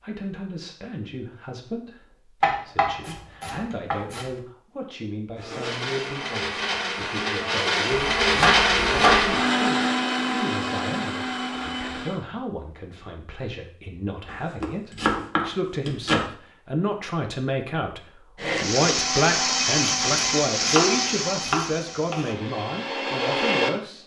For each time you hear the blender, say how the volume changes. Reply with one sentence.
The blender can be heard from 5.3 to 12.2 s, getting louder then quieter; and from 18.4 to 23.8 s, getting quieter then louder.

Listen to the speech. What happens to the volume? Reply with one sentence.
The loudness of the speech goes up.